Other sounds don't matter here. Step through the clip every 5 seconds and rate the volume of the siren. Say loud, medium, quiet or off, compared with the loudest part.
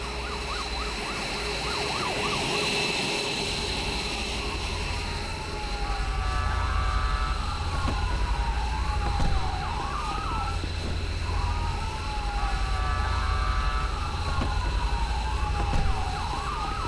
medium, loud, loud, loud.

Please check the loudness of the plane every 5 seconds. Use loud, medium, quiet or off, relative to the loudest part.
loud, medium, medium, medium.